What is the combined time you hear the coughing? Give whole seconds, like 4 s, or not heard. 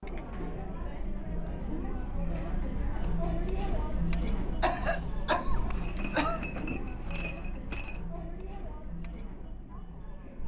2 s.